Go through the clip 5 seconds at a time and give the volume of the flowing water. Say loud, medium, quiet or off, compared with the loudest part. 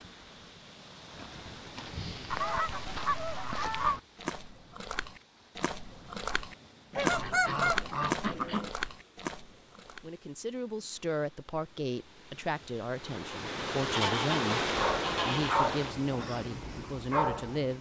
quiet, quiet, loud, loud.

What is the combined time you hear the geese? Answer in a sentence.
The geese can be heard for 5 seconds in total.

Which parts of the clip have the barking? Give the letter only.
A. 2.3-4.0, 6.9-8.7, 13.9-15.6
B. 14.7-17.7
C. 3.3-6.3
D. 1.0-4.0
B.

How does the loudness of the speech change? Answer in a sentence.
The volume of the speech stays about the same.